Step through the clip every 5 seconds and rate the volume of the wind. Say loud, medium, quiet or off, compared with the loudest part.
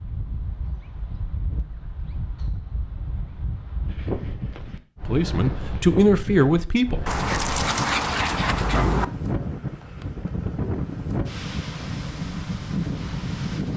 medium, loud, loud.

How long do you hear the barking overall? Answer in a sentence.
You can hear the barking for 2 seconds altogether.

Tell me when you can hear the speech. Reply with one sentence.
The speech can be heard from 5.0 to 7.2 s.